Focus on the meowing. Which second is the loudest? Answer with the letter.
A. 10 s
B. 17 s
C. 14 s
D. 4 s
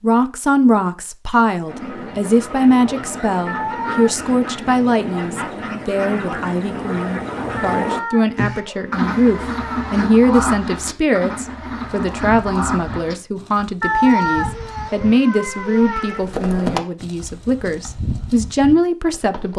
C.